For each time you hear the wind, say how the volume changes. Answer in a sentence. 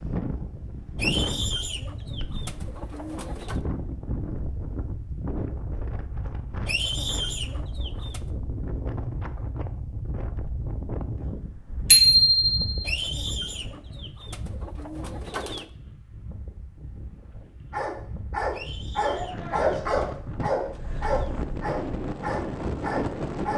You can hear the wind from 0.0 to 23.5 s, getting quieter then louder.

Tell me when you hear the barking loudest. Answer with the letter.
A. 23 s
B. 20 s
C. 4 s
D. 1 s
B.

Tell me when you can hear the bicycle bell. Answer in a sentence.
The bicycle bell can be heard from 11.9 to 12.8 s.